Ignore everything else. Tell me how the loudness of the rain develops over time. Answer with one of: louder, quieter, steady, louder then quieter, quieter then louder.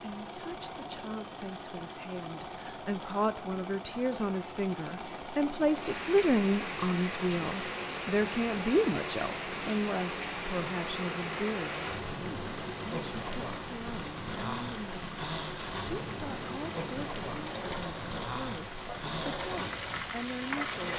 steady.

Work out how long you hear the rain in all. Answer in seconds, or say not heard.
15 s.